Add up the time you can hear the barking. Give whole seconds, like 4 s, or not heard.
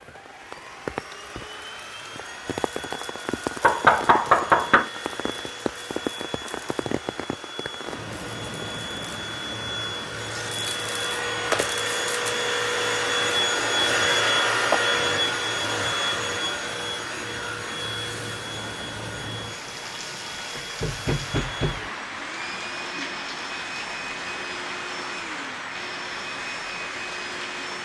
not heard.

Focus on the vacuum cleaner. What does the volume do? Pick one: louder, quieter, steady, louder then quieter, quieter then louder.
louder then quieter.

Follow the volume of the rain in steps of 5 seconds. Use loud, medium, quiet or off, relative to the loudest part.
loud, loud, medium, medium, loud, loud.